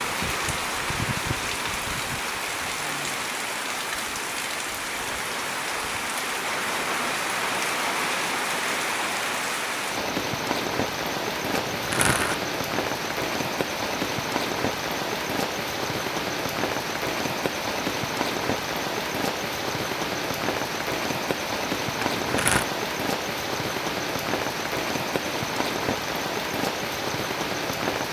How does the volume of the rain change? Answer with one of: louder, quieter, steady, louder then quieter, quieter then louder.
steady.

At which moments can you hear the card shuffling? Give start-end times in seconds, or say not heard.
11.5-12.3, 21.9-22.6.